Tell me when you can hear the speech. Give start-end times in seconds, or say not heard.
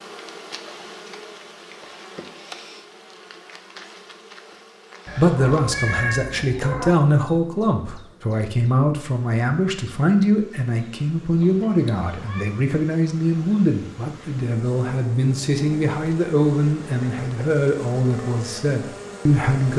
5.2-19.7.